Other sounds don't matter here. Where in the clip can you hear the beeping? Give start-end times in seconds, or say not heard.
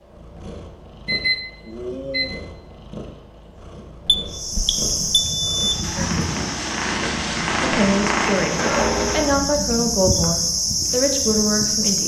1.1-2.3, 4.0-6.1, 8.6-9.4.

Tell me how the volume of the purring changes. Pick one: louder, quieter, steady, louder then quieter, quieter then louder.
louder then quieter.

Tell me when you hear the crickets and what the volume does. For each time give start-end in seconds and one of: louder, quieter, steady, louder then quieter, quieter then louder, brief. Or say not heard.
4.2-12.0 quieter then louder.